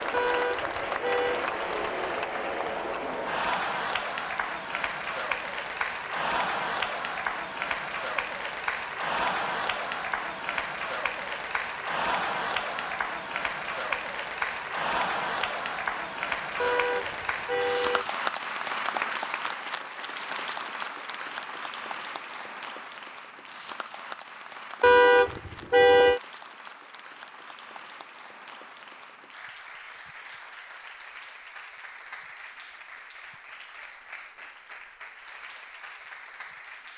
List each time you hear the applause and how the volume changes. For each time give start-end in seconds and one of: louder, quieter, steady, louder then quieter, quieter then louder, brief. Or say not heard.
0.0-36.9 quieter.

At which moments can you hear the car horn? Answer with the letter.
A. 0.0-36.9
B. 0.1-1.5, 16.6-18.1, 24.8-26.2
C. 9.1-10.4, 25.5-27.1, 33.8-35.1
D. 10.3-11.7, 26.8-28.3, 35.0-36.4
B.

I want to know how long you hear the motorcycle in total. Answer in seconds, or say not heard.
not heard.